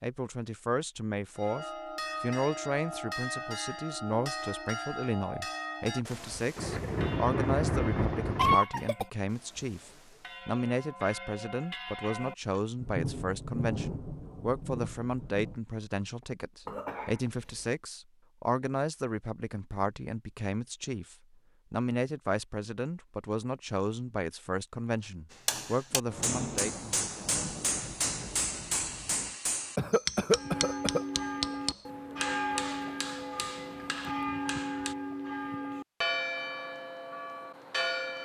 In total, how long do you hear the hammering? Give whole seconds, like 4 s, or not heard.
10 s.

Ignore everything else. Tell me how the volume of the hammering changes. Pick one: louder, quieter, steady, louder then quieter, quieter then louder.
quieter.